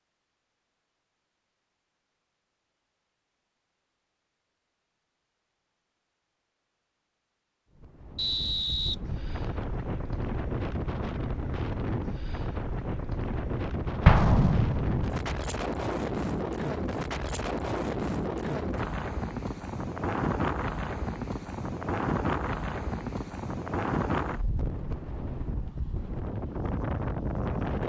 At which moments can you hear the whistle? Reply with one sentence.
The whistle can be heard from 8.2 to 9.7 s.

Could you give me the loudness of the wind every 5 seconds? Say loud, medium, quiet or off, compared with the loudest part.
off, medium, loud, loud, loud, loud.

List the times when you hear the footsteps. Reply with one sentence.
You can't hear the footsteps here.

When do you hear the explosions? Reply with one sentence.
The explosions can be heard from 14.1 to 15.3 s.